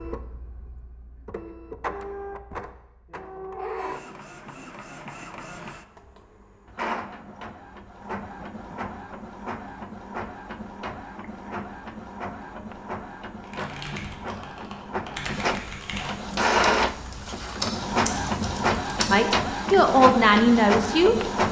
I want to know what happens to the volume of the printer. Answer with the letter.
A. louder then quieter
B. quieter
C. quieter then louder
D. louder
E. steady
D.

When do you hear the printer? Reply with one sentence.
The printer can be heard from 0.0 to 21.4 s.